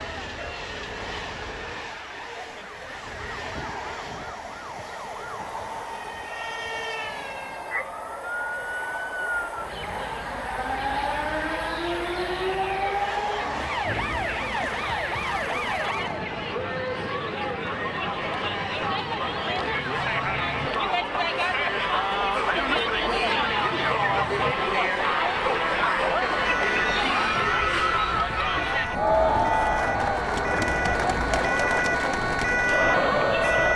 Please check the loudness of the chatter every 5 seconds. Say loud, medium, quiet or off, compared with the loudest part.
quiet, quiet, quiet, medium, loud, loud, loud.